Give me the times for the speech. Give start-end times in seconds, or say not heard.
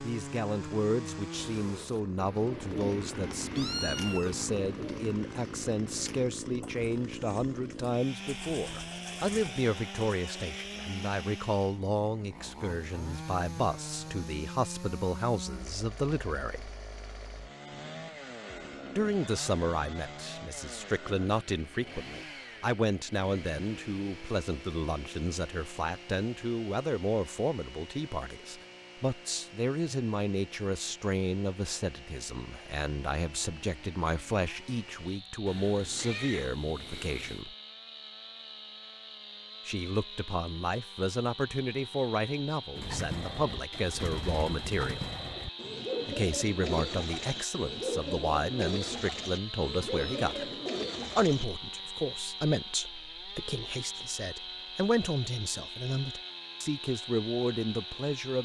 0.0-16.7, 18.9-37.5, 39.6-45.1, 46.0-50.5, 51.1-58.4.